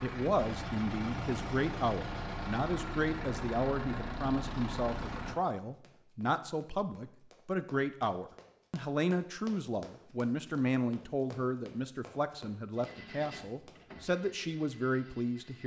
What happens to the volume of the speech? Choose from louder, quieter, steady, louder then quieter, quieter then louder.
steady.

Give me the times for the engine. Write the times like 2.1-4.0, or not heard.
0.0-5.4, 12.8-15.6.